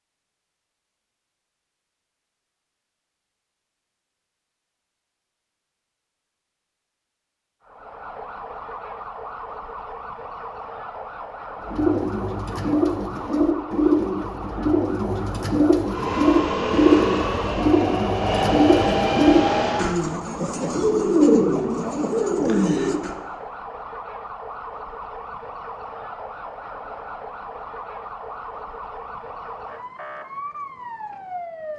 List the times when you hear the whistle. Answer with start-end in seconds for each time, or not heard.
not heard.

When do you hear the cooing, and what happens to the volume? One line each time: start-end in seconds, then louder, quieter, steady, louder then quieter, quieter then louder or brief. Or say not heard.
11.7-23.1 steady.